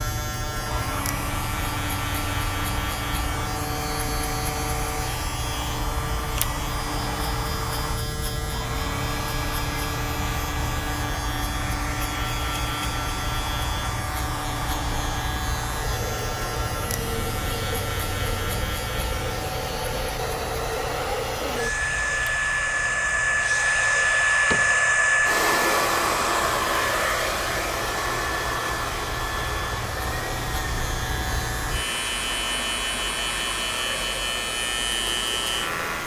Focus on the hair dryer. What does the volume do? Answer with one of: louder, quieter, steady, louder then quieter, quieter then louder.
louder then quieter.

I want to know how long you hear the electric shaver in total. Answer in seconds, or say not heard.
36 s.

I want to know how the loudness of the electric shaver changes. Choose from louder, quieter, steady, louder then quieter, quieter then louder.
quieter then louder.